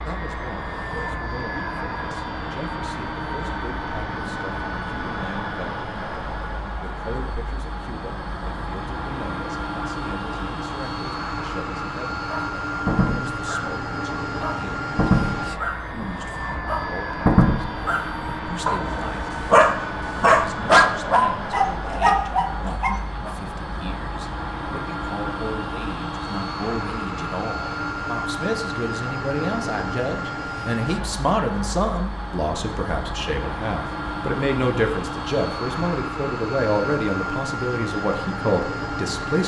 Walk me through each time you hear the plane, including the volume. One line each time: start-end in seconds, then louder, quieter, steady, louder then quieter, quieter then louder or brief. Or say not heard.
0.0-39.4 steady.